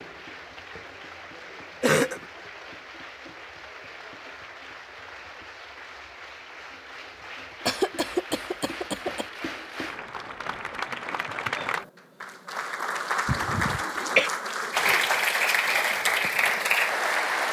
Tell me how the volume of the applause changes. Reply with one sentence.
The loudness of the applause goes up.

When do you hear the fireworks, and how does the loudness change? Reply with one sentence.
You can't hear the fireworks here.